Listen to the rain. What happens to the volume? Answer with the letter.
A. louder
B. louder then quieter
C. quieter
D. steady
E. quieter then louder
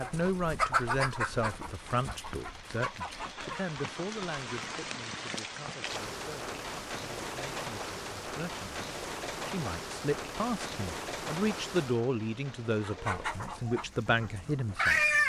B.